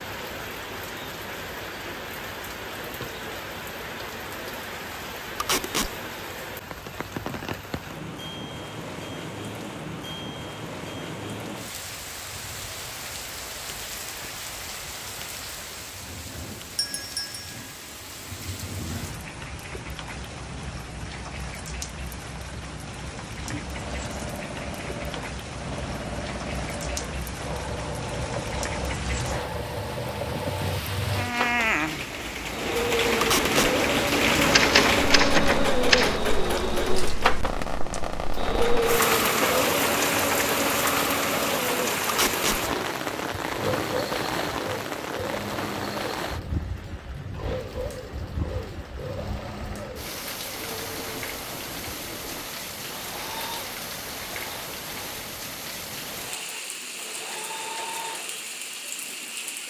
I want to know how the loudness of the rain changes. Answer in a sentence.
The volume of the rain goes up, then down.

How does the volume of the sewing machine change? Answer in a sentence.
The volume of the sewing machine goes up, then down.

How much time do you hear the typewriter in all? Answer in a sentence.
You can hear the typewriter for 2 seconds altogether.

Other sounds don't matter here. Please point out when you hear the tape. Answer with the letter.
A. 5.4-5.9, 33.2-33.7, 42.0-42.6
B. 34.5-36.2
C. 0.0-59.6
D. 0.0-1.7
A.